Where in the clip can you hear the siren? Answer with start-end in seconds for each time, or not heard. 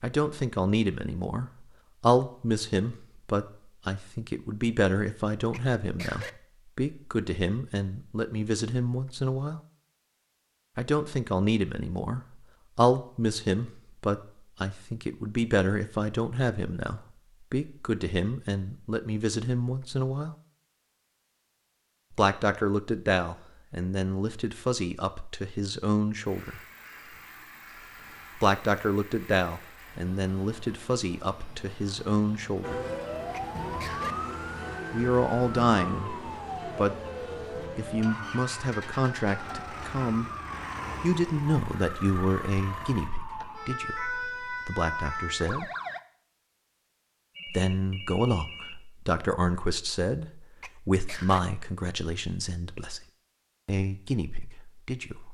32.6-46.0.